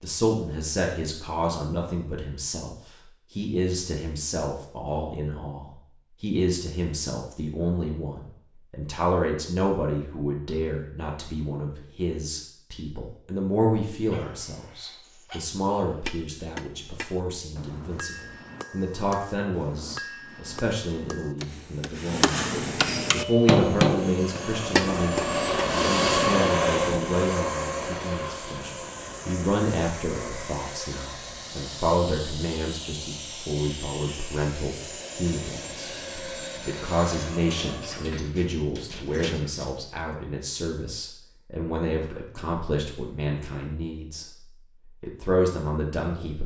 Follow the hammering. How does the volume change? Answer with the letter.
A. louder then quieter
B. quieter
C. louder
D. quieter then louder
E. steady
C.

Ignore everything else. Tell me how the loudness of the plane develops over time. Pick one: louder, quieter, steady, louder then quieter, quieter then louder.
quieter.